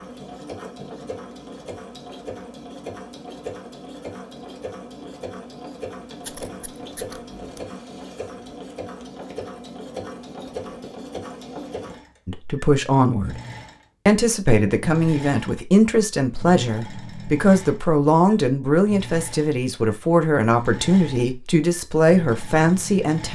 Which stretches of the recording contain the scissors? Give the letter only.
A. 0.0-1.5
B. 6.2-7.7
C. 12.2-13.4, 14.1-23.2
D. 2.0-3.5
B.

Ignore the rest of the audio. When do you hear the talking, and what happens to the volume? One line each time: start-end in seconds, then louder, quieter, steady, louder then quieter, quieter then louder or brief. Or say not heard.
12.2-13.4 brief
14.1-23.2 steady.